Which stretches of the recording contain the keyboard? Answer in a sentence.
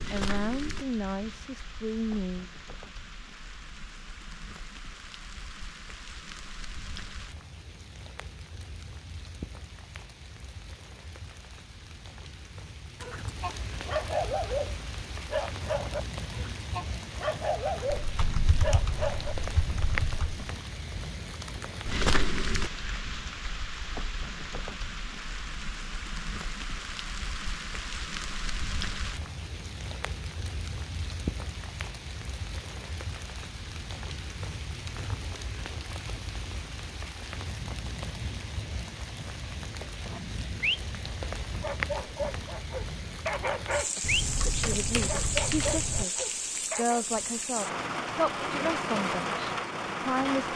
The keyboard can be heard from 18.0 to 20.4 s and from 44.0 to 46.0 s.